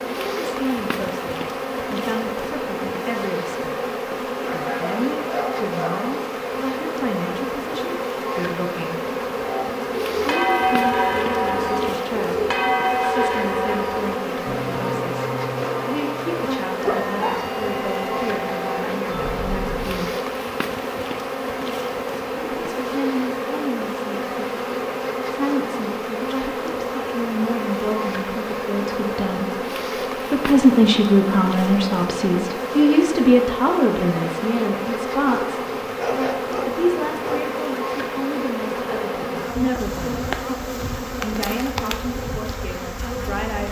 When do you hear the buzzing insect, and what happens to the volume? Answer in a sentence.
The buzzing insect can be heard from 0.0 to 43.6 s, at a steady volume.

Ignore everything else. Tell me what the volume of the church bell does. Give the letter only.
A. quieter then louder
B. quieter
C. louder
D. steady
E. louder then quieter
B.